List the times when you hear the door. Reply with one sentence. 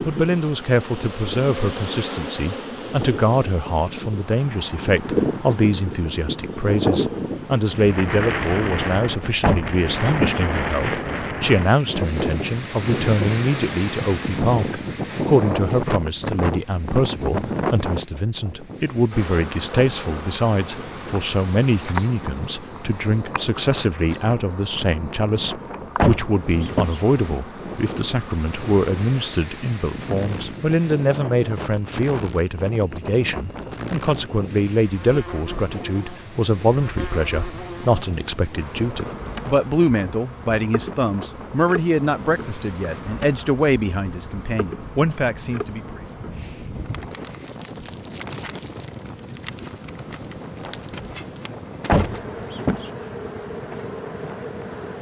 The door can be heard from 9.4 to 10.4 s, from 25.9 to 27.0 s and from 51.9 to 52.9 s.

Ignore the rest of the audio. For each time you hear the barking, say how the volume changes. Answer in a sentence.
You can't hear the barking here.